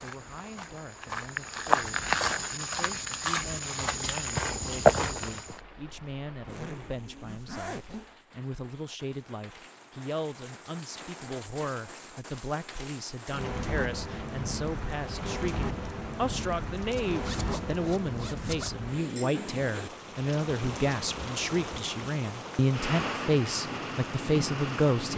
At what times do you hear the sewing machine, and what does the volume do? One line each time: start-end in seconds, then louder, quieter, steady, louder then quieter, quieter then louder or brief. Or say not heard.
not heard.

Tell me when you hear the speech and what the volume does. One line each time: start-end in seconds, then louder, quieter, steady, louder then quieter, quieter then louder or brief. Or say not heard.
0.0-25.1 louder.